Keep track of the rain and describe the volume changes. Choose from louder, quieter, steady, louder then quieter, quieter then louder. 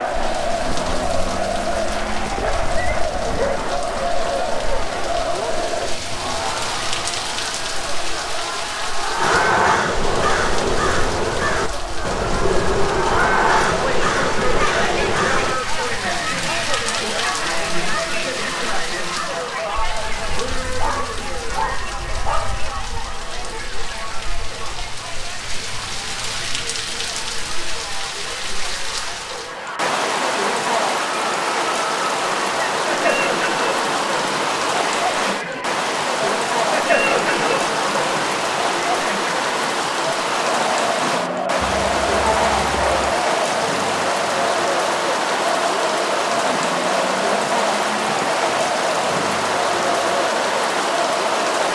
louder.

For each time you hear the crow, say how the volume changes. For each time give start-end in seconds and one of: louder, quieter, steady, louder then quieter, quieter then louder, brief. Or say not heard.
9.2-15.6 steady.